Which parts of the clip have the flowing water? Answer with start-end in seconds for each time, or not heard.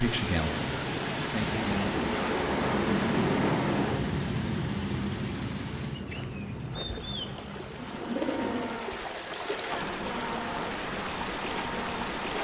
0.0-12.3.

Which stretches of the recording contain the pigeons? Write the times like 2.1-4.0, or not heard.
7.8-8.8.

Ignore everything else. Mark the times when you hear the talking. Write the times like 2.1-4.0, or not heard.
0.0-1.9.